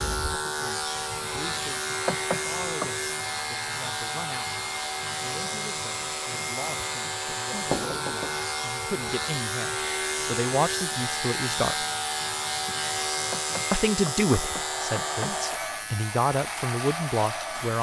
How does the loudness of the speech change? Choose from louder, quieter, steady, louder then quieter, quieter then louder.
louder.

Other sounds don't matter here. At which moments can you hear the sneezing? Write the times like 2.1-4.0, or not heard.
not heard.